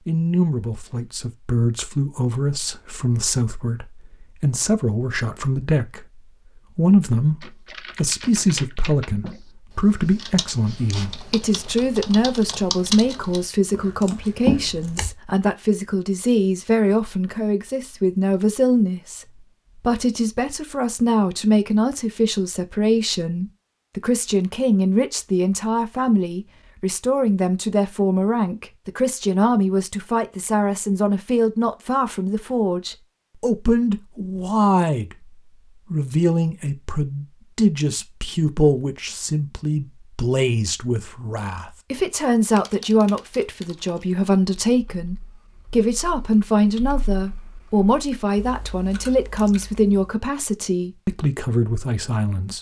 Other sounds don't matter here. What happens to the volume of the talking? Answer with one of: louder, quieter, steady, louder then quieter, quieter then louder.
steady.